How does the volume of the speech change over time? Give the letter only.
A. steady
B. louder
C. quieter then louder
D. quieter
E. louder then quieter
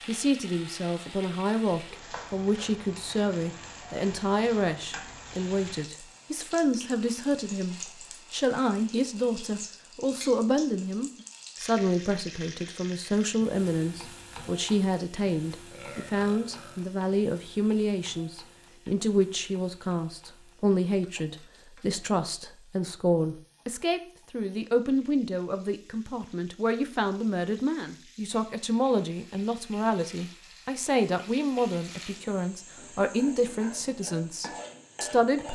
A.